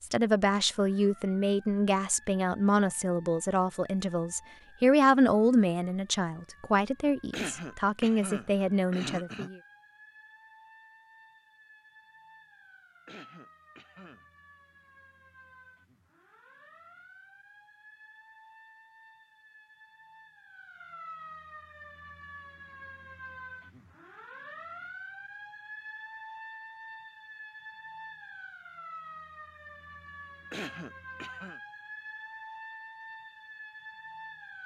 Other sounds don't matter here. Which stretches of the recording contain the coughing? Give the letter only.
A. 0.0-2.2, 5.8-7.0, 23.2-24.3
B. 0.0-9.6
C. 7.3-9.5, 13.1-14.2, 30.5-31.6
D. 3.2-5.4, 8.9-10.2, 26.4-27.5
C.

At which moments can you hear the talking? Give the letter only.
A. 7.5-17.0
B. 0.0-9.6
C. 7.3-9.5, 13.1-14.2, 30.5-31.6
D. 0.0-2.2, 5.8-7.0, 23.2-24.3
B.